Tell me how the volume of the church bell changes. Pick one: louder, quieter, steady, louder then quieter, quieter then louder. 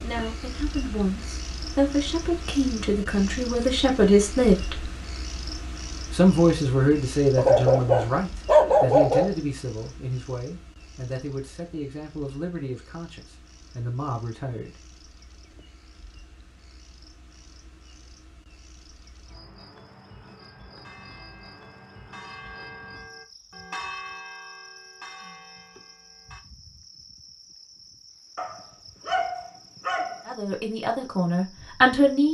louder then quieter.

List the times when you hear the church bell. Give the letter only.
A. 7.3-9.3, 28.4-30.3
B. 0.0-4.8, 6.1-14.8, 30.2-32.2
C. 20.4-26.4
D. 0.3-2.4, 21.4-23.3
C.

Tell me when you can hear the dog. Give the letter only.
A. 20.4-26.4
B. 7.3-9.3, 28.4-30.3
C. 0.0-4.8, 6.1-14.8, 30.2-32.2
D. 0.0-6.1
B.